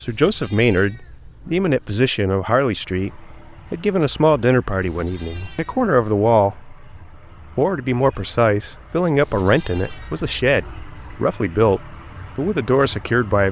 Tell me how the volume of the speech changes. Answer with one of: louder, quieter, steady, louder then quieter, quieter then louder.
steady.